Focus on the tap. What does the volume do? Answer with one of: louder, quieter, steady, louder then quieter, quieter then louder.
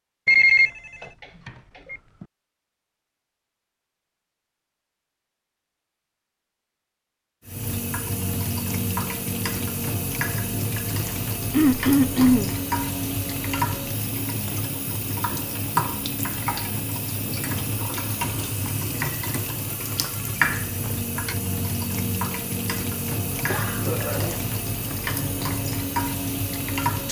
steady.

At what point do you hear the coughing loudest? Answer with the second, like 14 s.
12 s.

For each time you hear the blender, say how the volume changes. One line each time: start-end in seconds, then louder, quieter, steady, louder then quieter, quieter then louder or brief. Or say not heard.
not heard.